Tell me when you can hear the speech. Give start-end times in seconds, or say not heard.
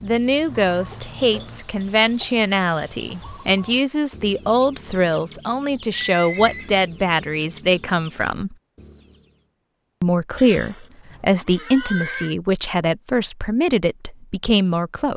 0.0-8.6, 10.0-15.1.